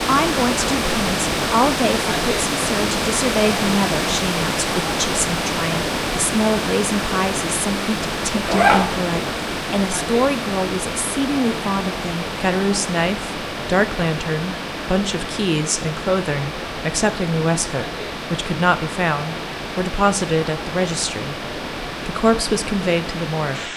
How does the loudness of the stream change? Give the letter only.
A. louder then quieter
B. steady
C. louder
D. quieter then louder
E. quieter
E.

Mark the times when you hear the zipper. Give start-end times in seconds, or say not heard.
8.4-9.1.